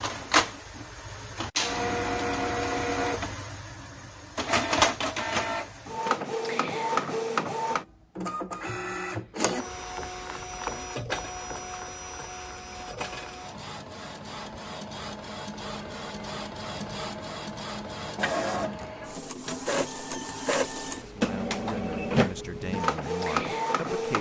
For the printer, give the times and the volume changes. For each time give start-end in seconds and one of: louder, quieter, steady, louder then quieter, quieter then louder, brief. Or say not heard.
0.0-24.1 quieter then louder.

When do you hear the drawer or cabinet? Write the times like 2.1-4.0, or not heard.
not heard.